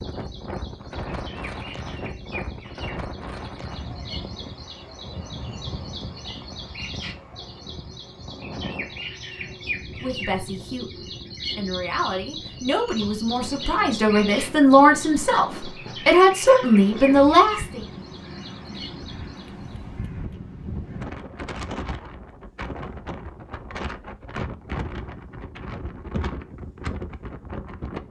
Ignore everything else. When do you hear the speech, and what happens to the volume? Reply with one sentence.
You can hear the speech from 10.0 to 17.8 s, getting louder.